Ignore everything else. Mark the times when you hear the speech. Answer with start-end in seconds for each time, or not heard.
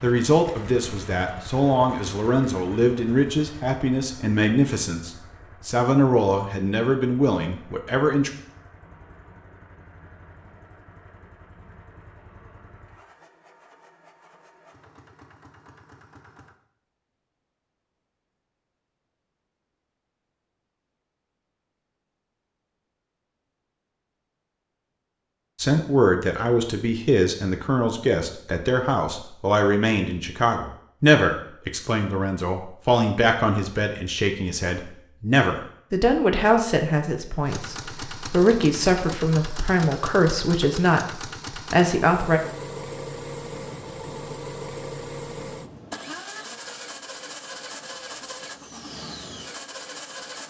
0.0-8.3, 25.6-42.4.